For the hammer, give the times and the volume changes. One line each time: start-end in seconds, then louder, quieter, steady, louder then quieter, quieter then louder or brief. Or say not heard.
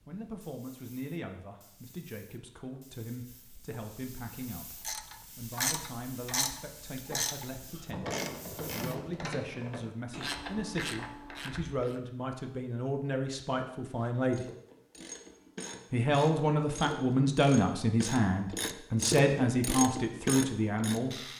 not heard.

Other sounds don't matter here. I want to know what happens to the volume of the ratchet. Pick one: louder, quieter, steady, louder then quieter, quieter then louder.
quieter then louder.